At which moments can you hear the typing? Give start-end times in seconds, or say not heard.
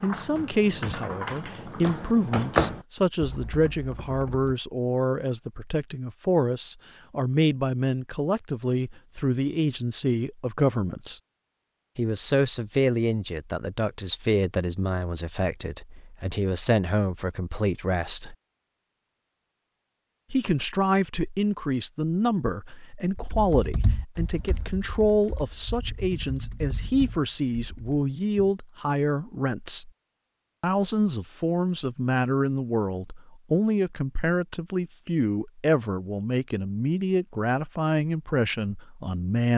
0.0-4.5, 23.1-28.6.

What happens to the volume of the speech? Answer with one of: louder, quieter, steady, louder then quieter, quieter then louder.
steady.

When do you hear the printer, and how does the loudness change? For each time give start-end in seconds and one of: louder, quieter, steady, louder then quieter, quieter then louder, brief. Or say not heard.
not heard.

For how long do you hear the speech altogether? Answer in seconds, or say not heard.
36 s.